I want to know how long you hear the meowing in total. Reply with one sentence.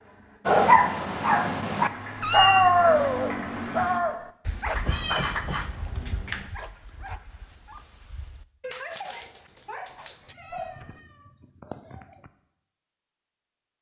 You can hear the meowing for 4 seconds altogether.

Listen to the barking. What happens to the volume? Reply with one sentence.
The loudness of the barking goes down, then up.